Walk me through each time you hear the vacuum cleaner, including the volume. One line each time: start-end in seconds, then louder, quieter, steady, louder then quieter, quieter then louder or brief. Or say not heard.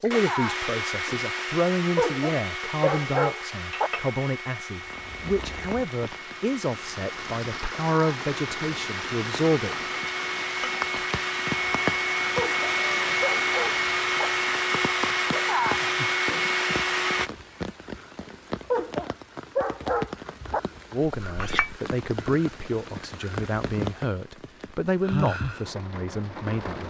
0.0-17.3 quieter then louder.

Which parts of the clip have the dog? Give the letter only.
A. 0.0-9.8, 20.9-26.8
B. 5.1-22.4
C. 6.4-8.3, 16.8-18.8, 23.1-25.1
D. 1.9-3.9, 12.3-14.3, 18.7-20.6
D.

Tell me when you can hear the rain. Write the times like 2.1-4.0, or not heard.
4.8-26.8.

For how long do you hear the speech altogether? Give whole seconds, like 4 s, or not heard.
16 s.